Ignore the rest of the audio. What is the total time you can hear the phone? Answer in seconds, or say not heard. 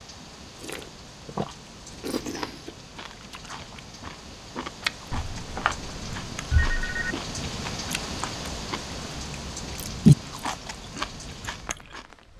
2 s.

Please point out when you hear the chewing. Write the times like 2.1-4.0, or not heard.
0.6-12.1.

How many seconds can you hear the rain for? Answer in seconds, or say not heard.
12 s.